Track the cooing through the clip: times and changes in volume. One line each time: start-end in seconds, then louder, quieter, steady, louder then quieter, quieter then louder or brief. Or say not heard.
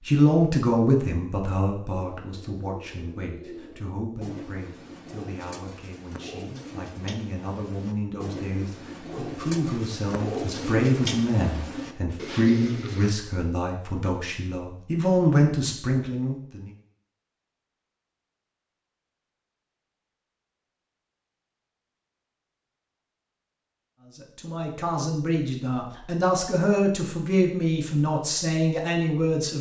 2.0-13.2 louder.